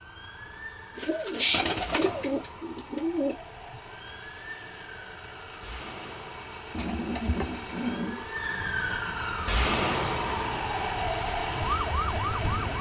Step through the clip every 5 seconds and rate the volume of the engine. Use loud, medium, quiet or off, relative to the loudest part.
quiet, medium, loud.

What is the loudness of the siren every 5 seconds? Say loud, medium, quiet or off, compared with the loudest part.
quiet, loud, loud.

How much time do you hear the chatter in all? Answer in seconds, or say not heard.
not heard.